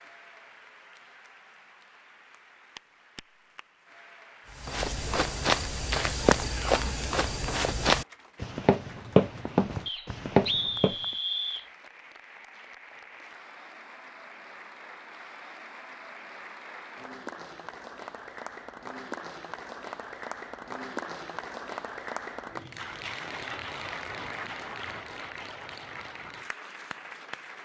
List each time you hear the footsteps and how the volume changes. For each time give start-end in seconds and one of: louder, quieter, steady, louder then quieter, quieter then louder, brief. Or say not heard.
4.6-10.9 steady.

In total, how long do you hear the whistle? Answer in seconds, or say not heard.
2 s.